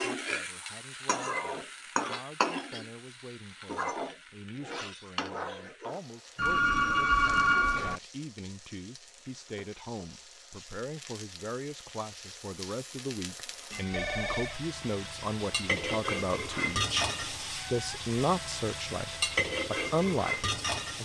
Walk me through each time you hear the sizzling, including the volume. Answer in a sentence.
The sizzling can be heard from 0.0 to 21.0 s, getting quieter then louder.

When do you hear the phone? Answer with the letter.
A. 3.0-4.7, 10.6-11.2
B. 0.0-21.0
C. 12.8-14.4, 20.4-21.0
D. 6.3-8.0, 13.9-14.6
D.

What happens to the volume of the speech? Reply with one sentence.
The loudness of the speech goes up.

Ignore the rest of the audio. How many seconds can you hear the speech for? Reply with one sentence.
The speech can be heard for 21 seconds in total.